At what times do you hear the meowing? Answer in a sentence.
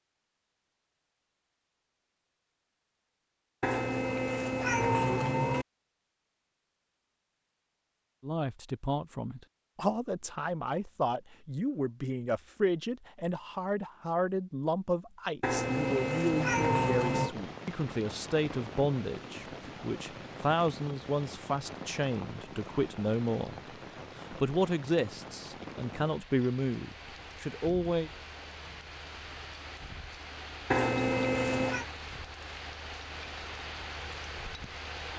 You can hear the meowing from 3.6 to 5.7 s, from 15.4 to 17.4 s and from 30.7 to 31.9 s.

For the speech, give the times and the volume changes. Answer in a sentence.
You can hear the speech from 8.2 to 28.1 s, at a steady volume.